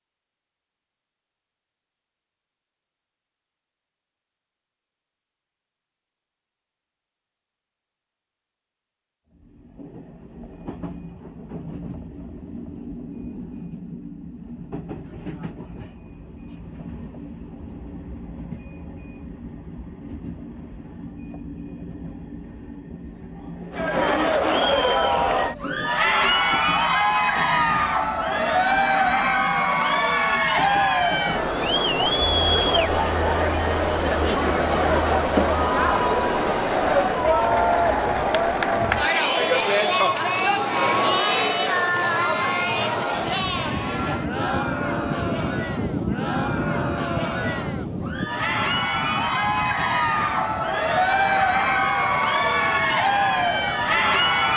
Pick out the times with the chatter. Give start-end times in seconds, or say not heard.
23.7-54.5.